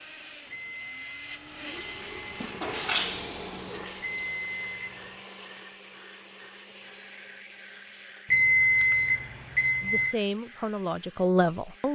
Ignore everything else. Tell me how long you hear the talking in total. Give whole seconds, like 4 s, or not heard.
2 s.